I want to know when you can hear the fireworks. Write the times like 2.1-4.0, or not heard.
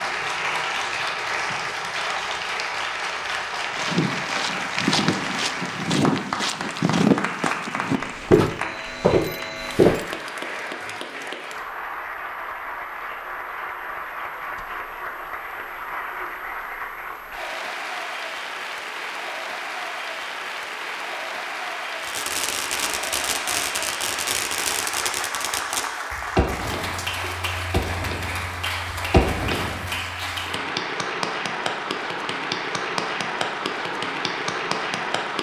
22.0-29.9.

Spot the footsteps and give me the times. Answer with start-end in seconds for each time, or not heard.
3.6-10.0.